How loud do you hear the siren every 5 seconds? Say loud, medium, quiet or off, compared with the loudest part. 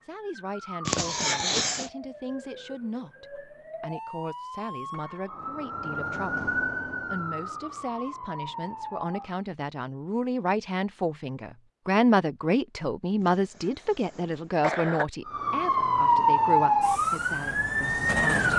quiet, medium, off, loud.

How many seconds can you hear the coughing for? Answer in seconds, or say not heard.
3 s.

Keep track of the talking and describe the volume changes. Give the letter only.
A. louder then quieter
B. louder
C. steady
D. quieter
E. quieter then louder
A.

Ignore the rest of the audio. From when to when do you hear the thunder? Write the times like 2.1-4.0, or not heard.
not heard.